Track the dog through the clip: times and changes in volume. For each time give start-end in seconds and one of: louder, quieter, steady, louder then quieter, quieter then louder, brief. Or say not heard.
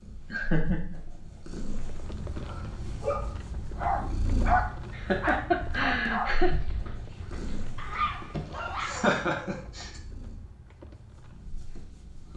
2.5-9.1 quieter then louder.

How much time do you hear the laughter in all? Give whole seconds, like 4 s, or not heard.
4 s.